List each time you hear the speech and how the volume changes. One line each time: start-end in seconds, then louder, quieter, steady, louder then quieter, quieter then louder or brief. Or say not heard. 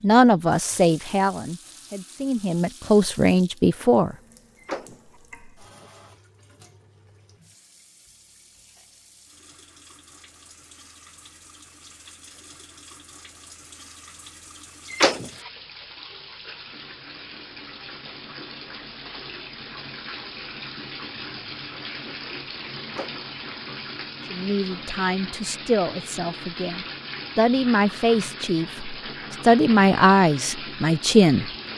0.0-4.2 quieter then louder
24.2-31.5 quieter then louder.